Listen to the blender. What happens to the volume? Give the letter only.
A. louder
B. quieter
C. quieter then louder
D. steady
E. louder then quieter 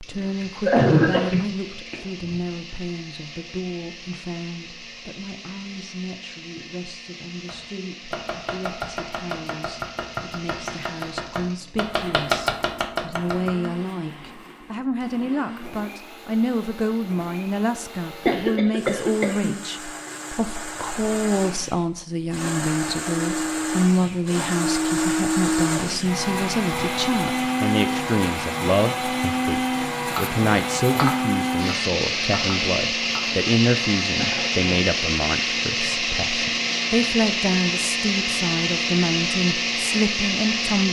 A.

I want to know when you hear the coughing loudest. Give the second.
1 s.